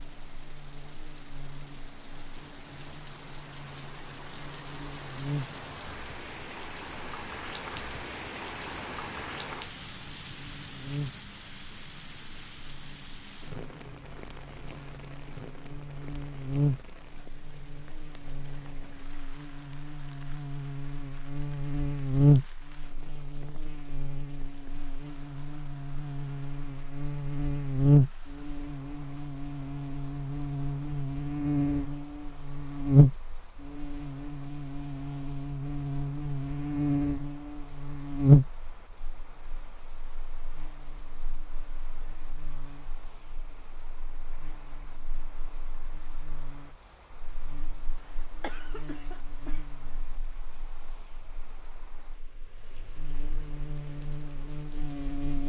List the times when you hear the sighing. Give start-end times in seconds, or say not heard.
not heard.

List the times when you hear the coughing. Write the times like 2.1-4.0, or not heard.
48.0-49.6.